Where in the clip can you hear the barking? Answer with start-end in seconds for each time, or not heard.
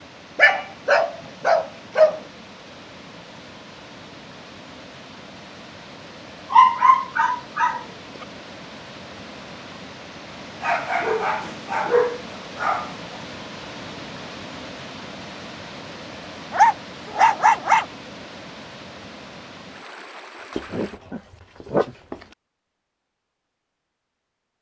0.3-2.2, 6.5-7.8, 10.6-12.9, 16.5-17.9, 20.6-22.1.